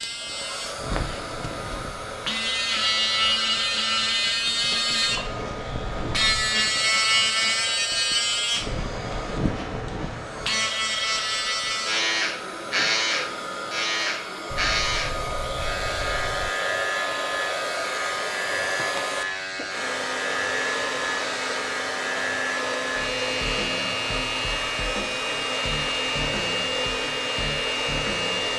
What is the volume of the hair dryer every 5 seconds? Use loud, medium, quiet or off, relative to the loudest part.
medium, medium, medium, loud, loud, loud.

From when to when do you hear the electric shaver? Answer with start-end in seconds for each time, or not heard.
0.0-28.5.